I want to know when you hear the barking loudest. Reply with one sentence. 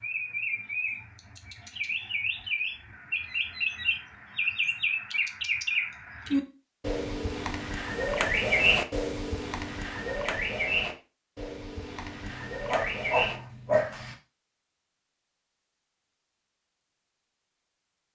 The volume of the barking peaks at 14 seconds.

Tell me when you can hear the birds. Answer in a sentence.
You can hear the birds from 0.0 to 13.4 s.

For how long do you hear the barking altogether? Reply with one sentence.
You can hear the barking for 2 seconds altogether.